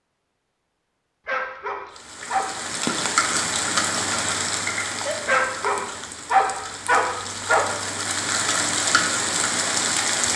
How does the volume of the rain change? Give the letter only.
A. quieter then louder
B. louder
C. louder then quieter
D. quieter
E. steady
A.